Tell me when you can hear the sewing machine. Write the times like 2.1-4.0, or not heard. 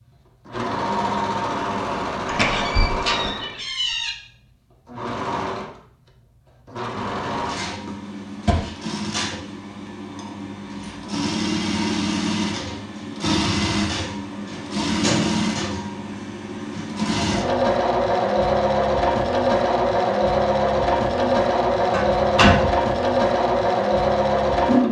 0.0-3.6, 4.8-24.8.